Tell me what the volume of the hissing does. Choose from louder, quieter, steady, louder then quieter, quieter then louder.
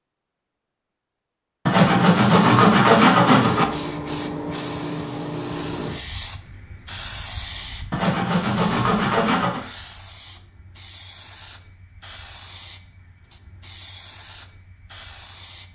quieter.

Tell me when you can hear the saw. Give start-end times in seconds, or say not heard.
1.6-3.6, 7.9-9.7.